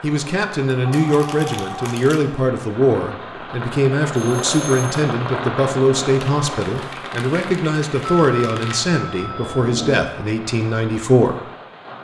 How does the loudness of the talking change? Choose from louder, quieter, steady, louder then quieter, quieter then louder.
steady.